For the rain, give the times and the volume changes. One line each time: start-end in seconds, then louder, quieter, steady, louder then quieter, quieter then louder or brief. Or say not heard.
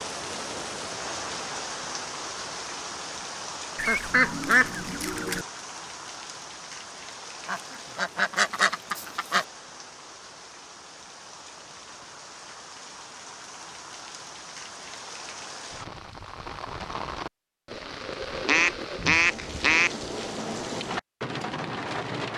0.0-22.3 quieter then louder.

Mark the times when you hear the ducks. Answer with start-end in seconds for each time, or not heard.
3.8-5.5, 7.5-9.4, 18.4-19.9.